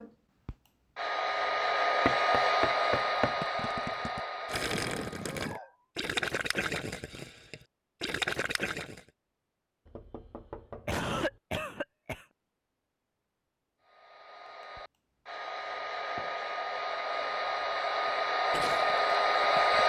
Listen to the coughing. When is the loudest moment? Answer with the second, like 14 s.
11 s.